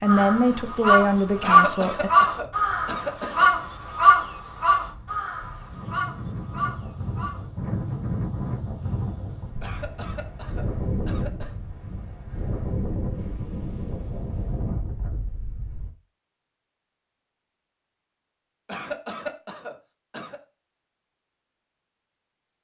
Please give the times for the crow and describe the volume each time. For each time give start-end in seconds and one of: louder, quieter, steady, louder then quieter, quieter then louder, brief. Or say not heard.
0.1-7.5 quieter.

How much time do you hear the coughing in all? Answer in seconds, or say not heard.
6 s.